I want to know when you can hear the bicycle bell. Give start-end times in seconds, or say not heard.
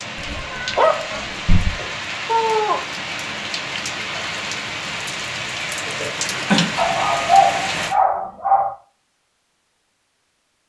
not heard.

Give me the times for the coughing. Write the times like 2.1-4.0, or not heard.
2.2-2.8, 5.8-6.7.